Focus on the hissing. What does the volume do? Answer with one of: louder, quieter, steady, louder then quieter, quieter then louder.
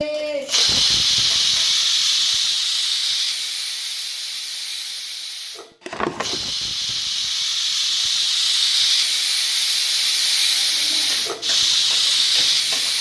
quieter then louder.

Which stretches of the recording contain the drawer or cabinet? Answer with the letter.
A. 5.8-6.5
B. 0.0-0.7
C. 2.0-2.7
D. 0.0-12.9
A.